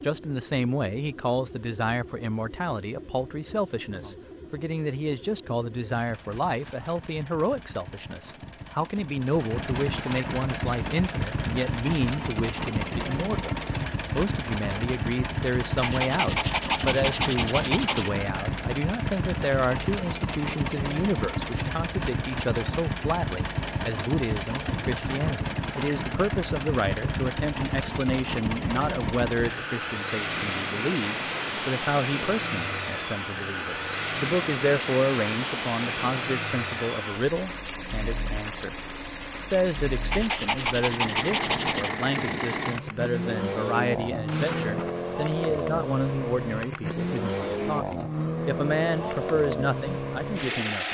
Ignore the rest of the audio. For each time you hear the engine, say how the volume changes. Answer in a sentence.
You can hear the engine from 0.0 to 50.9 s, getting louder.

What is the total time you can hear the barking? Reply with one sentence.
You can hear the barking for 4 seconds altogether.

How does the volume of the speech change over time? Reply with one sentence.
The volume of the speech stays about the same.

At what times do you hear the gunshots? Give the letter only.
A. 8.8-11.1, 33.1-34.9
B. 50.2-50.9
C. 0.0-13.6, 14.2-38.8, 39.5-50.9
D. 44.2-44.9
D.